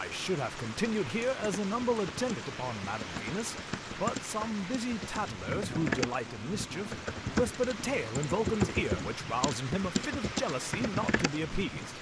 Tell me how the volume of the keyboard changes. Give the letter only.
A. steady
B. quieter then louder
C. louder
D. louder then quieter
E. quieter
C.